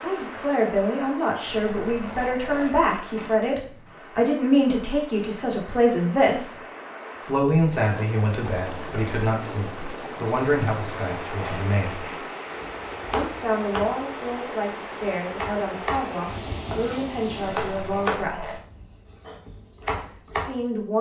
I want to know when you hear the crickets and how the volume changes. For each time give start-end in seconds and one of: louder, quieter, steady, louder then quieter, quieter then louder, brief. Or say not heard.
not heard.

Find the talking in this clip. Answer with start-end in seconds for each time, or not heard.
0.0-6.5, 7.2-12.0, 13.1-18.6, 20.3-20.9.